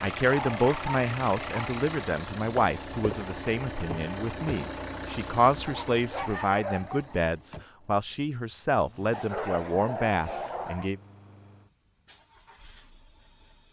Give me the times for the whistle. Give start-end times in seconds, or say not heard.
not heard.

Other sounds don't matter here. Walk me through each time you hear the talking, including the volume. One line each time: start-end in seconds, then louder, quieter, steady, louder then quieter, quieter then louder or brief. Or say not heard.
0.0-11.0 steady.